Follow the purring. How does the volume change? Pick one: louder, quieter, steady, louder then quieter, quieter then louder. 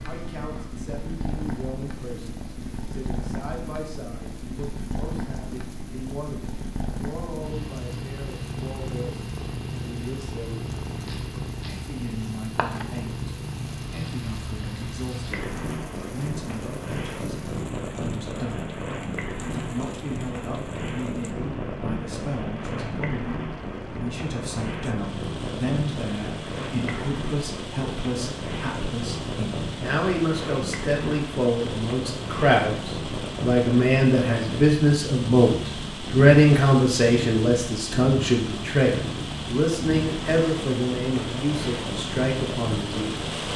steady.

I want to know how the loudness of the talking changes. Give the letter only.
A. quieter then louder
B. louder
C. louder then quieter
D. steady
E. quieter
B.